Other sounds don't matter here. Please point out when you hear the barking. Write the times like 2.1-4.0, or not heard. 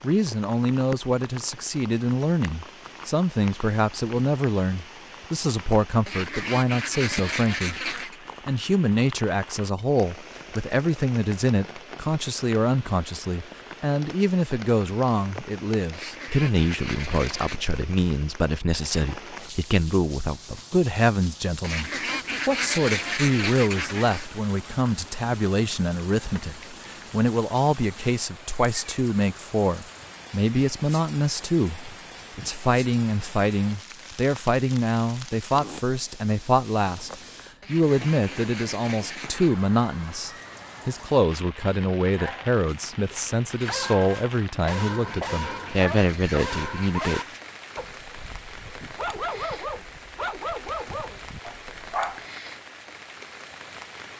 42.1-52.2.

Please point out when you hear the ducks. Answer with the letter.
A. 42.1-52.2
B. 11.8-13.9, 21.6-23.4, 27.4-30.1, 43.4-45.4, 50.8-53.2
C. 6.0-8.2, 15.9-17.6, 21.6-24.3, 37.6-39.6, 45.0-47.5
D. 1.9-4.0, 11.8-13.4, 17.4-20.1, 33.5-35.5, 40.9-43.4
C.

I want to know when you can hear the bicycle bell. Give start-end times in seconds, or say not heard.
not heard.